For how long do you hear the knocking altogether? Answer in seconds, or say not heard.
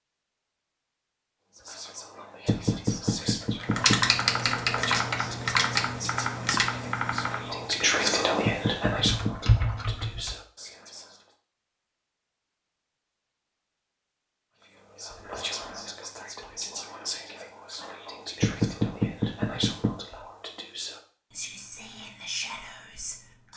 4 s.